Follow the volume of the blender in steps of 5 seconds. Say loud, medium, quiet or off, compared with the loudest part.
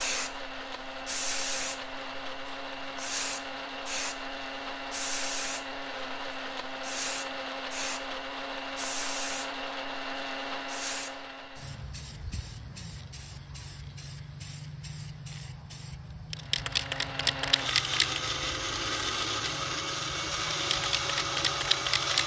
medium, medium, medium, loud, loud.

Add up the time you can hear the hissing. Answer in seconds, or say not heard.
22 s.